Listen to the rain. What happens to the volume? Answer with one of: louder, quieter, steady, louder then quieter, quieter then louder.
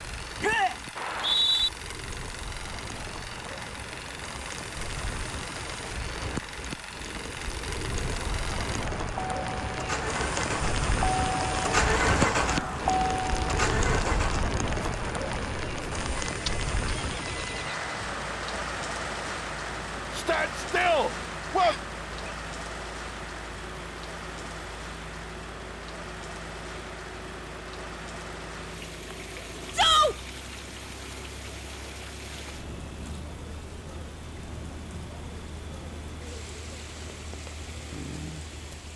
louder then quieter.